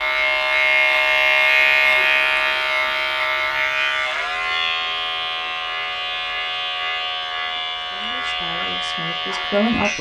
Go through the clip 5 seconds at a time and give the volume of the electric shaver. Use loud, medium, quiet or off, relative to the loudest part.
loud, medium.